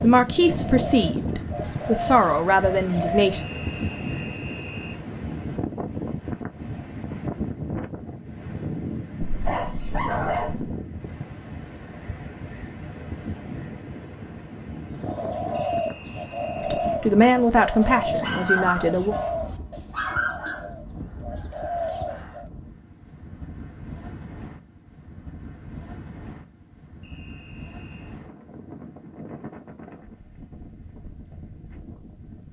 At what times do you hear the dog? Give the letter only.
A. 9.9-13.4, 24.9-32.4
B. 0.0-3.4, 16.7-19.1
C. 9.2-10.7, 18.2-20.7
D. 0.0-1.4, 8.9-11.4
C.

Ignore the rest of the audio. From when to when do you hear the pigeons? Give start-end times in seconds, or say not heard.
0.0-3.5, 14.9-22.5.